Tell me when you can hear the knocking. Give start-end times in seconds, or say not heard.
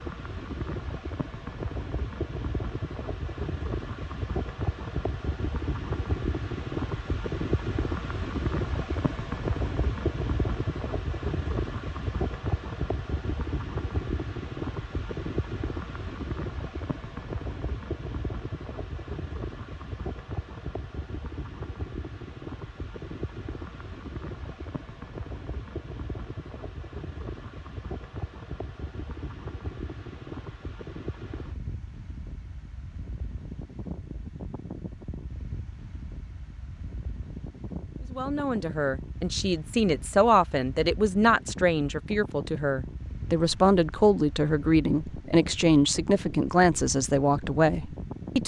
not heard.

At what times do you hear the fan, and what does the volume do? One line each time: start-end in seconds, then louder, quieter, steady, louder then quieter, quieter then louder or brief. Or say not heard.
0.0-48.4 quieter.